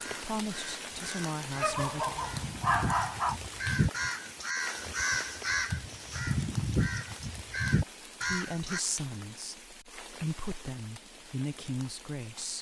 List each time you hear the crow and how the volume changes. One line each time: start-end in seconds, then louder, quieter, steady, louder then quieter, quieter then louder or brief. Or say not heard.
0.0-8.8 louder.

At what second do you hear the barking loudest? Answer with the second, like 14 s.
3 s.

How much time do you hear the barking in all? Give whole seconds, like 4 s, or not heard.
2 s.